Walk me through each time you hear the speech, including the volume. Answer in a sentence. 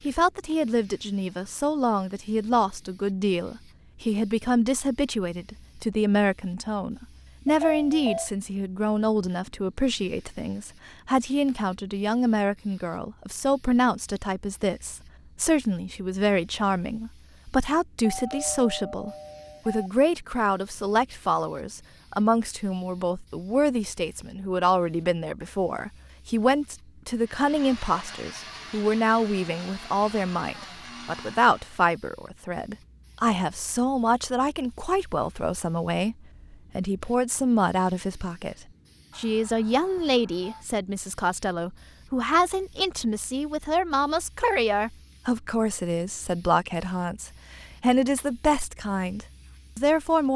You can hear the speech from 0.0 to 50.3 s, at a steady volume.